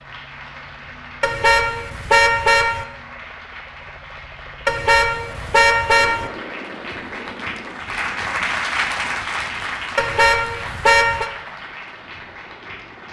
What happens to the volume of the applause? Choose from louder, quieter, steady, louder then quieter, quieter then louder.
louder then quieter.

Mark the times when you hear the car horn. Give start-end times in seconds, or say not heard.
1.2-2.9, 4.7-6.3, 9.9-11.3.